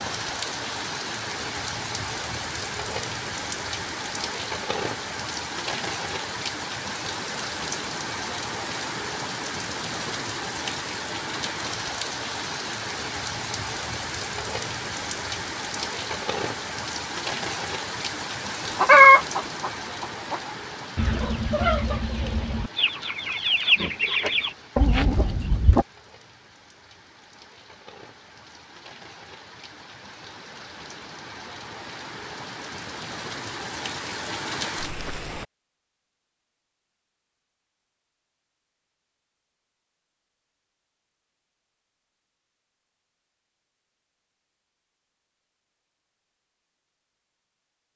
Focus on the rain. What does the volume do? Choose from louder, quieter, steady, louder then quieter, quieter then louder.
quieter then louder.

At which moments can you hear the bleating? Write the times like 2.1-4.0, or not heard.
not heard.